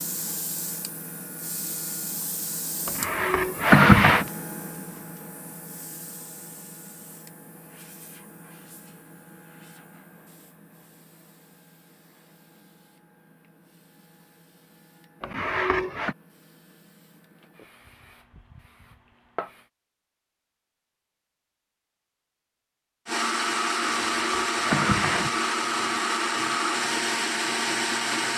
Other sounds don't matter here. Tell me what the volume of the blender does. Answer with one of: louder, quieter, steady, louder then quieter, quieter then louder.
steady.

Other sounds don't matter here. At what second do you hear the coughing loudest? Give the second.
4 s.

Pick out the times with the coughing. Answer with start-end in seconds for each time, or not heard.
2.9-4.2, 15.2-16.1, 23.9-25.4.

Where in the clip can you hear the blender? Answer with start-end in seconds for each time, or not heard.
23.1-28.3.